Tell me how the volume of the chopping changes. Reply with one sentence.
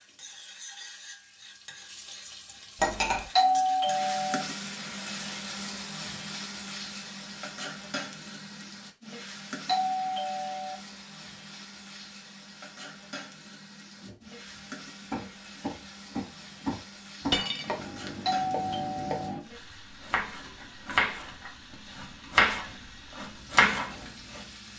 The loudness of the chopping goes up.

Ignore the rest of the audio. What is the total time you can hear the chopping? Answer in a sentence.
The chopping can be heard for 10 seconds in total.